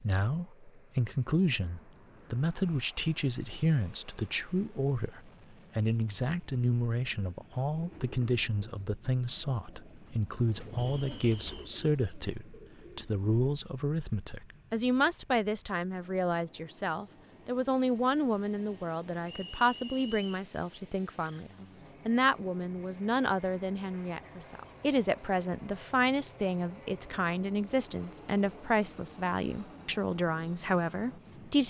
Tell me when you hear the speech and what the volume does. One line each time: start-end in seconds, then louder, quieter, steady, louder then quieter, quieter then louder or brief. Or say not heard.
0.0-31.6 steady.